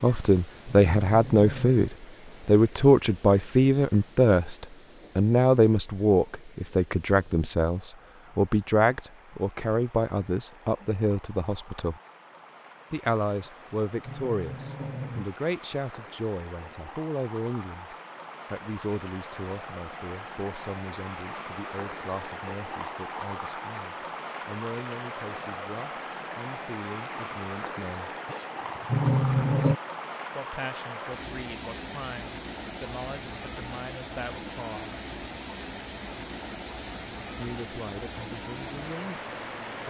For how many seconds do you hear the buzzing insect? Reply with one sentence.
You can't hear the buzzing insect here.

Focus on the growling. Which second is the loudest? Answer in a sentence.
The loudest moment of the growling is at 29 seconds.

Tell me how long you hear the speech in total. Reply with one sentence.
The speech can be heard for 34 seconds in total.